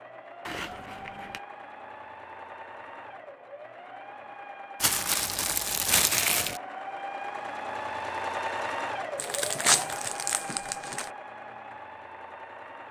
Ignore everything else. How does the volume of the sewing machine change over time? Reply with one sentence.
The loudness of the sewing machine goes up, then down.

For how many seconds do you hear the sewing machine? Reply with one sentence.
You can hear the sewing machine for 13 seconds altogether.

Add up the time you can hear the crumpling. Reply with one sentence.
You can hear the crumpling for 5 seconds altogether.